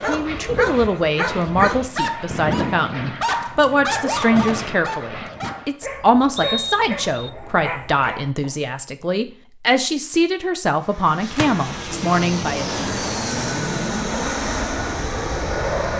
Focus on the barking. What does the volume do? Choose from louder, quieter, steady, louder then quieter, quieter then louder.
quieter.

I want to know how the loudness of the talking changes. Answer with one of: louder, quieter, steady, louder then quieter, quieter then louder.
steady.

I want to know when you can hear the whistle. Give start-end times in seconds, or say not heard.
6.3-7.3.